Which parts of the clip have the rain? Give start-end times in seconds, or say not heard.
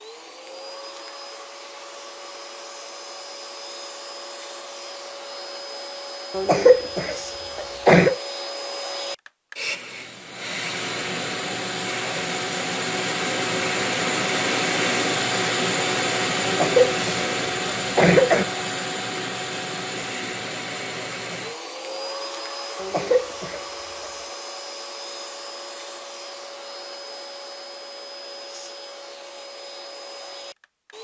not heard.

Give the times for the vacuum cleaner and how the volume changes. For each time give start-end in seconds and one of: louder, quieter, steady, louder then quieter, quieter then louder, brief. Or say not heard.
0.0-30.9 louder then quieter.